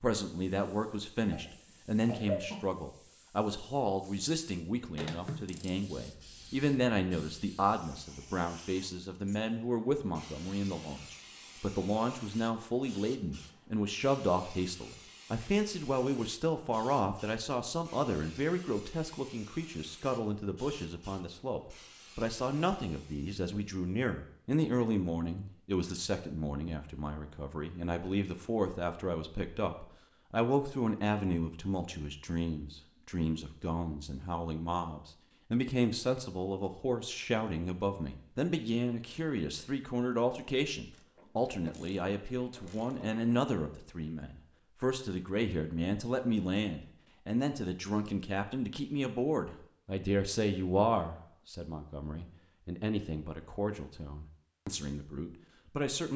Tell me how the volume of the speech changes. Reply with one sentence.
The volume of the speech stays about the same.